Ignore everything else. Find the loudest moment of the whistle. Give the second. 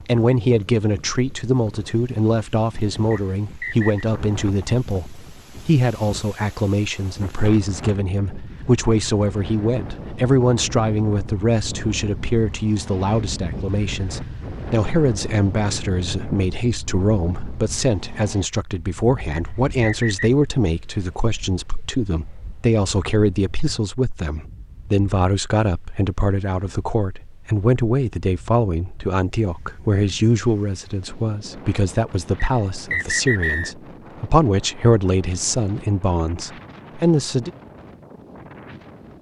33 s.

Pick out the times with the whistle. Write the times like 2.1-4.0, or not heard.
3.1-4.0, 19.3-20.3, 32.4-33.8.